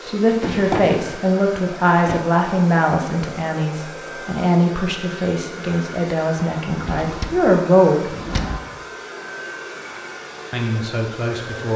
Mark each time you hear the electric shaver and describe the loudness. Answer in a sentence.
You can't hear the electric shaver here.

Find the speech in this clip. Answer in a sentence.
You can hear the speech from 0.0 to 8.2 s and from 10.5 to 11.7 s.